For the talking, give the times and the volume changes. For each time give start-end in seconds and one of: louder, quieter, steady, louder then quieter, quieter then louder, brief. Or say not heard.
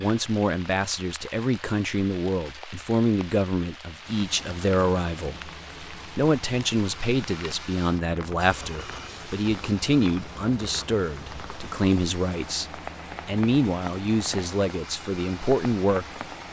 0.0-16.1 steady.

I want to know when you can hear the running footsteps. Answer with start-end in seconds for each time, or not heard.
not heard.